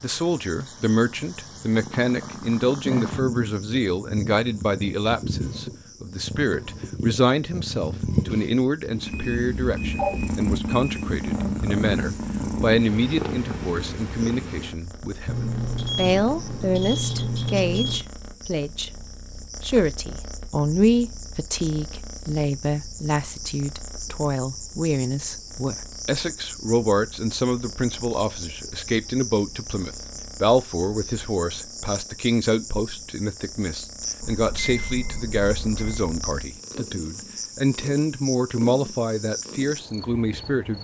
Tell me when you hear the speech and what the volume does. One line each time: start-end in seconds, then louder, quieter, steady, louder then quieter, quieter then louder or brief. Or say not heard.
0.0-40.7 steady.